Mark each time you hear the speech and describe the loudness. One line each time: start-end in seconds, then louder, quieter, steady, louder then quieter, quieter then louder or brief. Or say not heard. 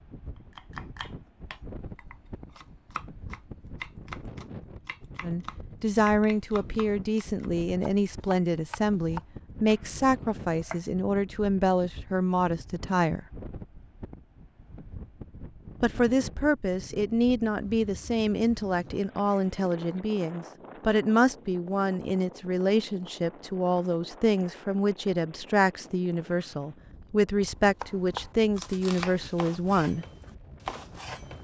5.2-13.2 steady
15.8-30.1 steady.